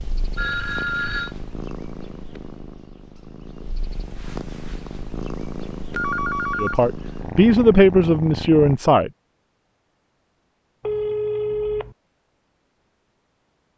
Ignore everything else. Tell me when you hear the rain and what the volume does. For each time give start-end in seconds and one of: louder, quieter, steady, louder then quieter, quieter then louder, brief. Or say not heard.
not heard.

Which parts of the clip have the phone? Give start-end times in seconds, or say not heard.
0.3-1.4, 6.0-6.8, 10.8-11.9.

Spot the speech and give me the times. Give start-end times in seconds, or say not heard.
6.5-9.1.